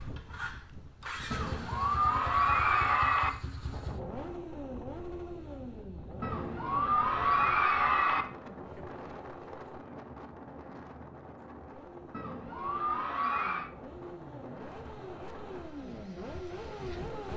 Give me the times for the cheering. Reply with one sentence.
The cheering can be heard from 1.3 to 3.3 s, from 6.2 to 8.2 s and from 12.1 to 13.7 s.